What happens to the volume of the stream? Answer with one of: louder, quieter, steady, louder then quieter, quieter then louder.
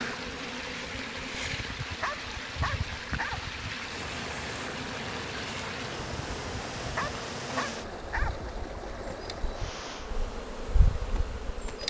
steady.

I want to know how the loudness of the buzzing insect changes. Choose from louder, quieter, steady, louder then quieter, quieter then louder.
steady.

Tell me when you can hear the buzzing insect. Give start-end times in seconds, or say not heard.
0.0-11.8.